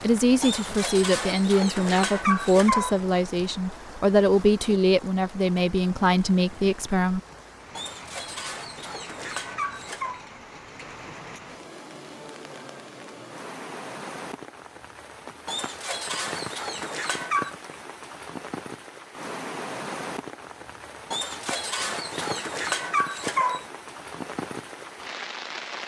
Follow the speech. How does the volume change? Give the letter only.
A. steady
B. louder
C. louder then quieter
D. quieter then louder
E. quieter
A.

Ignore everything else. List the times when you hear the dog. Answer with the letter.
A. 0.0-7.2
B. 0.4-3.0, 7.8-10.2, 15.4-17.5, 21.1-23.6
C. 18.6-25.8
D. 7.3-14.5
B.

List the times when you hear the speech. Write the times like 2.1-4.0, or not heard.
0.0-7.2.